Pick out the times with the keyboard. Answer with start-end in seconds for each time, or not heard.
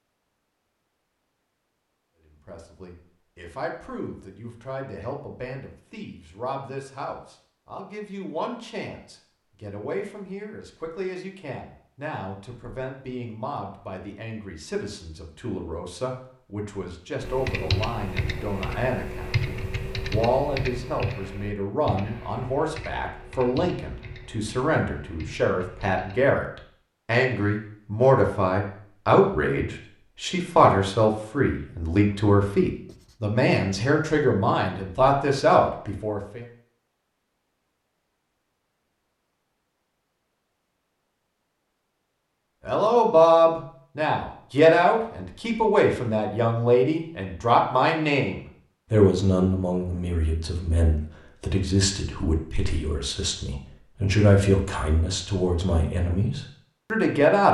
17.2-26.2.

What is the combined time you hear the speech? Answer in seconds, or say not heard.
49 s.